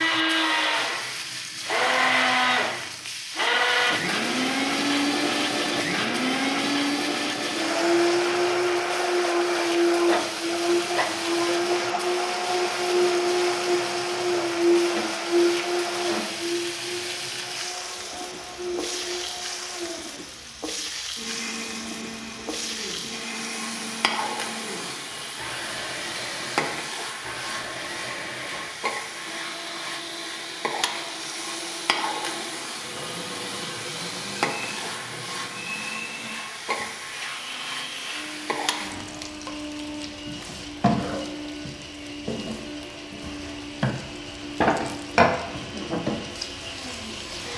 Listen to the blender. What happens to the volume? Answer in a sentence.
The loudness of the blender goes down.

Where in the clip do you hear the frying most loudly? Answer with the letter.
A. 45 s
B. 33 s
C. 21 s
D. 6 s
A.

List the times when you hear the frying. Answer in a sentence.
You can hear the frying from 0.0 to 47.5 s.